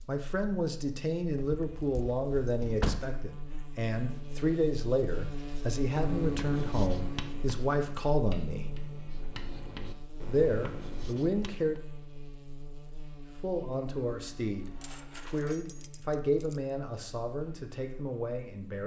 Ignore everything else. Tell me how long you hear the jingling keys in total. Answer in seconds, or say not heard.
4 s.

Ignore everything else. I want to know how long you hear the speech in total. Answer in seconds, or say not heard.
16 s.